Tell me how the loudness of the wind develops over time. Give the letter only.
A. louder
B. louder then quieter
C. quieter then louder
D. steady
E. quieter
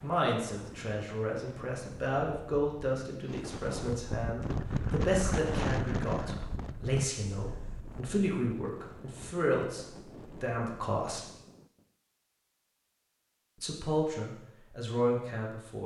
B.